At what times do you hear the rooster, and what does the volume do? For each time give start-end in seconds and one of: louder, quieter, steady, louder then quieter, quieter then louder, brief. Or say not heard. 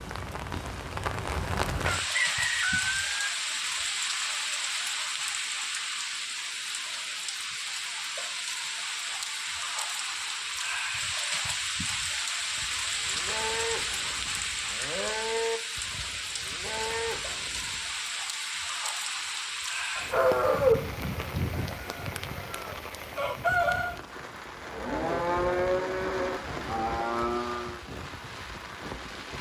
1.8-3.3 brief
19.9-23.9 quieter then louder.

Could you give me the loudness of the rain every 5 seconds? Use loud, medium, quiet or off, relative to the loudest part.
loud, loud, loud, loud, medium, medium.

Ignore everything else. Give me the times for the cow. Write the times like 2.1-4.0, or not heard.
12.4-17.9, 24.6-27.8.